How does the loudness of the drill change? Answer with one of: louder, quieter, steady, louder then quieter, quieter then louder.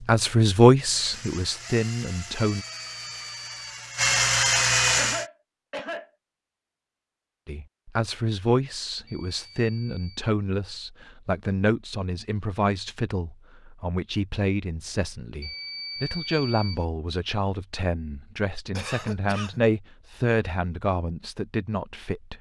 louder.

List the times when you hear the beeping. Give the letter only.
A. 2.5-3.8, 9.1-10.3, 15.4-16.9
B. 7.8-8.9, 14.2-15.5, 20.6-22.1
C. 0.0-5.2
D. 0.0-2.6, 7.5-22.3
A.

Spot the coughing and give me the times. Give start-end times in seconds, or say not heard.
5.0-6.1, 18.8-19.6.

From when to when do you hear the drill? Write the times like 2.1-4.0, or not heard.
0.0-5.2.